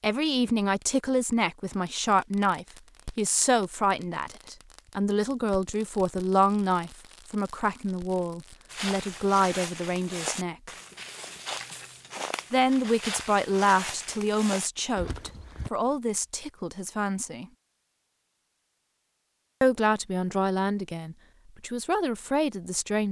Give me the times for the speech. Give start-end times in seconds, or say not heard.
0.0-10.7, 12.5-17.4, 19.6-23.0.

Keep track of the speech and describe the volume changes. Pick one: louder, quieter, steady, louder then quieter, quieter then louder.
steady.